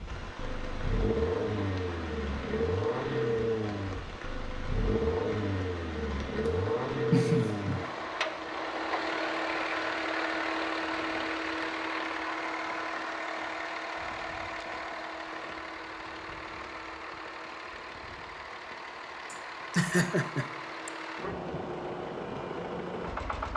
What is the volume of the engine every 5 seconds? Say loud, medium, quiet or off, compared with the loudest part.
loud, loud, loud, medium, medium.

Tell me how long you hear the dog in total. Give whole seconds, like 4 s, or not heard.
not heard.